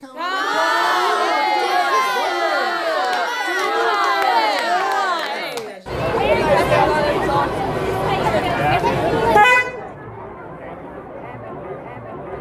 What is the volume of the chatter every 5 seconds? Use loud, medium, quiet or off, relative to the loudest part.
loud, loud, quiet.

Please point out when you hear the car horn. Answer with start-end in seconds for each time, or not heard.
9.3-9.8.